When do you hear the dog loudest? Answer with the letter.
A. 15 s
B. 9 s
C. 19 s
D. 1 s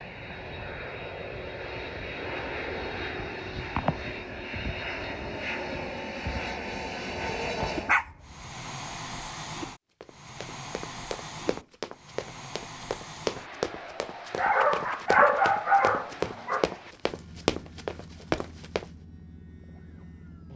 A.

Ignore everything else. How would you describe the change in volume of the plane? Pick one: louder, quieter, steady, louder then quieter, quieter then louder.
quieter.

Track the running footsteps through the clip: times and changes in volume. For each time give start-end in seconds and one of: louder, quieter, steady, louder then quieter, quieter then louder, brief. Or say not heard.
10.0-18.9 louder.